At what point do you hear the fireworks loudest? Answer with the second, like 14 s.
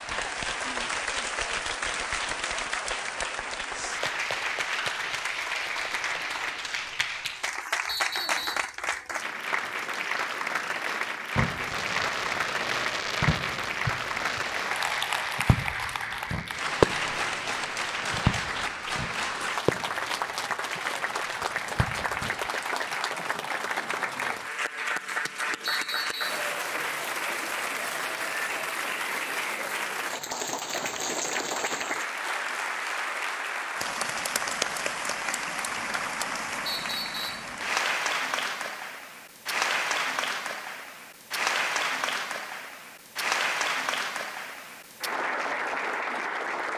17 s.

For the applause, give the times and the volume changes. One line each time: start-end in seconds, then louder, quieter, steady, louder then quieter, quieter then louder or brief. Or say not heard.
0.0-46.7 steady.